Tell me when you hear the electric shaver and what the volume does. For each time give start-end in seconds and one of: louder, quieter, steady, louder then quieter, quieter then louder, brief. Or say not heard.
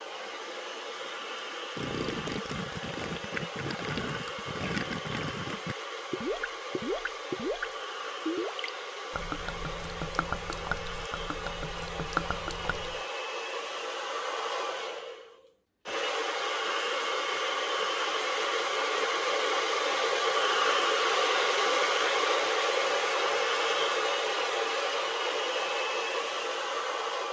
not heard.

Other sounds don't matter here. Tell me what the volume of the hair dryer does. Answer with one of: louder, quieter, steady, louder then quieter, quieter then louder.
louder.